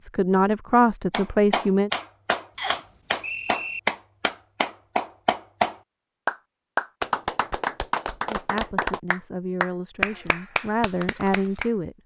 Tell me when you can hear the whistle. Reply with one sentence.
The whistle can be heard from 2.5 to 3.8 s.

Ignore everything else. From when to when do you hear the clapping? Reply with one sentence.
The clapping can be heard from 1.1 to 11.7 s.